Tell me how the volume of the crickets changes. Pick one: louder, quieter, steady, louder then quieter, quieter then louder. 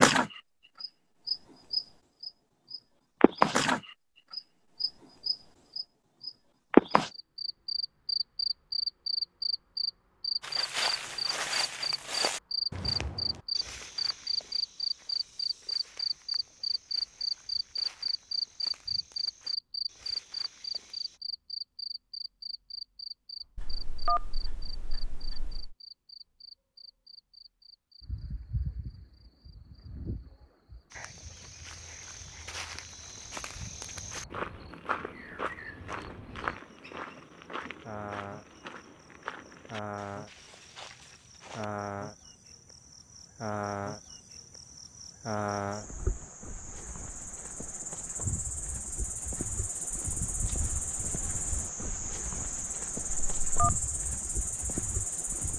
quieter then louder.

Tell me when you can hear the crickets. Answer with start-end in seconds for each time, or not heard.
0.0-55.5.